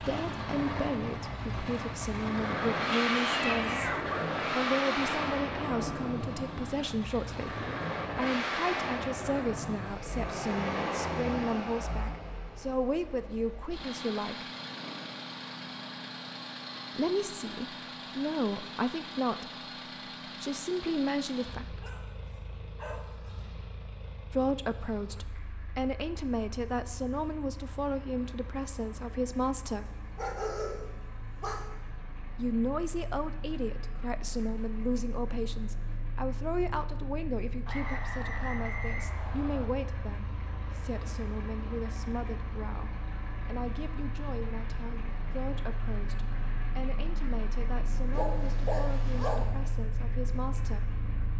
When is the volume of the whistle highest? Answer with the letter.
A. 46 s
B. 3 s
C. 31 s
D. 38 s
D.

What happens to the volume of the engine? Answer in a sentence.
The volume of the engine goes down, then up.